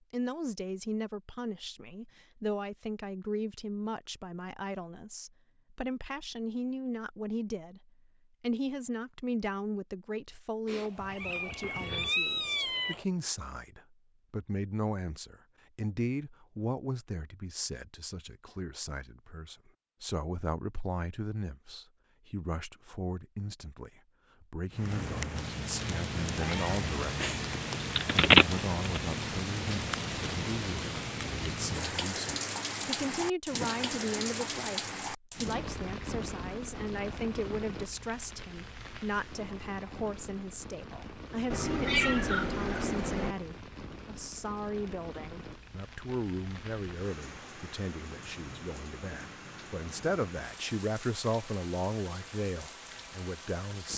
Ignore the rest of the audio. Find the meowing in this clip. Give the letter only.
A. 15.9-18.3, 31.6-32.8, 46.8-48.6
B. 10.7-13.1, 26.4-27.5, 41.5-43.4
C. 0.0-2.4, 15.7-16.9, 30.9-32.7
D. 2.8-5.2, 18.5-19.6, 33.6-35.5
B.